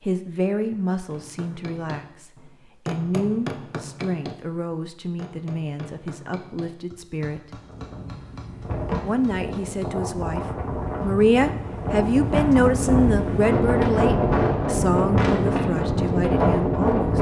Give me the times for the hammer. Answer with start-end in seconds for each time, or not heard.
1.1-9.9.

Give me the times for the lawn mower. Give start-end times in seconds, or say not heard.
not heard.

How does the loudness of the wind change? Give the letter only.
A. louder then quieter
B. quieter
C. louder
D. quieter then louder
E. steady
C.